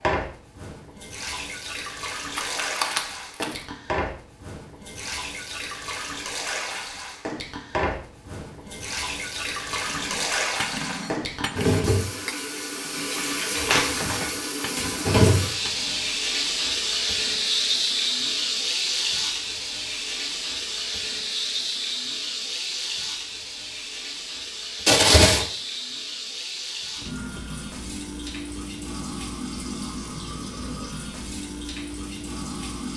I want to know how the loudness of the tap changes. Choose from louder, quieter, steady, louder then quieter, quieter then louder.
louder then quieter.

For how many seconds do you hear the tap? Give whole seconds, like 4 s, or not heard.
33 s.